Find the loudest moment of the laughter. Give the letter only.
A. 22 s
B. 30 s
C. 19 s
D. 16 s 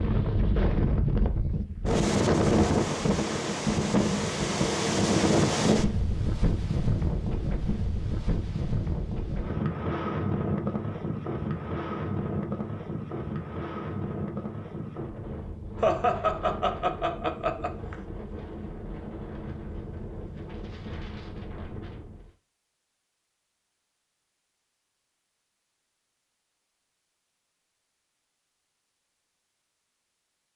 D.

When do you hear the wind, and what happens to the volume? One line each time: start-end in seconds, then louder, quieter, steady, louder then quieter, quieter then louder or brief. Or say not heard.
0.0-22.3 quieter.